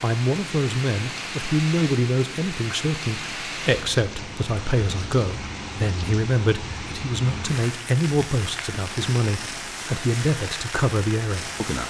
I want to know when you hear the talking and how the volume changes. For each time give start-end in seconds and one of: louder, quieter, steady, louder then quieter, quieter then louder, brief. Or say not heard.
0.0-11.8 steady.